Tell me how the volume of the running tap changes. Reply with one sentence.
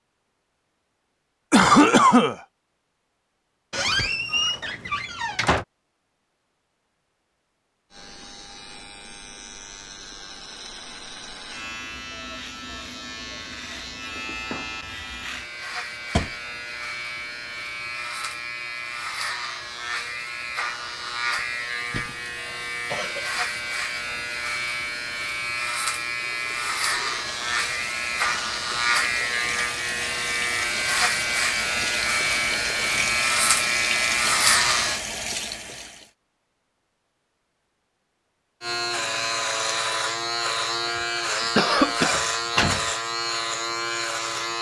The volume of the running tap goes up.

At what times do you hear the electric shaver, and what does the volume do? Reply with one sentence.
You can hear the electric shaver from 7.9 to 35.0 s, getting louder; and from 38.6 to 44.5 s, at a steady volume.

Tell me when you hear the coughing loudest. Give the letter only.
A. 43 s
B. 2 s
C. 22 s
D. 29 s
B.